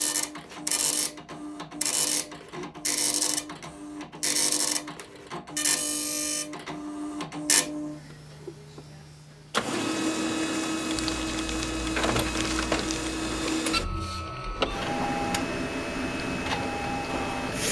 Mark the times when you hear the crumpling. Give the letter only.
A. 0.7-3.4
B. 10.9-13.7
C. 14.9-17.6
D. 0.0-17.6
B.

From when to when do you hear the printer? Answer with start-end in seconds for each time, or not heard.
0.0-17.6.